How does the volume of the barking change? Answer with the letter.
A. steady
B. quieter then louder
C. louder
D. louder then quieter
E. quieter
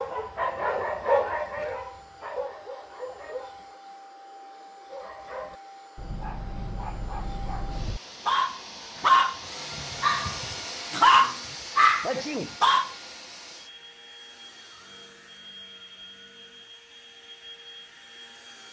B.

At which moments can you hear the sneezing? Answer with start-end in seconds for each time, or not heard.
12.0-12.6.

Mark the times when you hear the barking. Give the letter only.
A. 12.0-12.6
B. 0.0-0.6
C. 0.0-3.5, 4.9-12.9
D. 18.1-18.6
C.